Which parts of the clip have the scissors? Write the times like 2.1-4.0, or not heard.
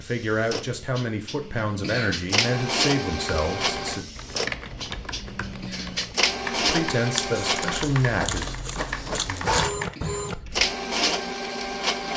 7.2-9.6.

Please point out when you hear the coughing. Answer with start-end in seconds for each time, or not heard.
1.8-2.2, 5.6-6.0, 9.9-10.4.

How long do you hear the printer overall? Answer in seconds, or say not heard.
12 s.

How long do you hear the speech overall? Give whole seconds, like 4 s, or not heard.
6 s.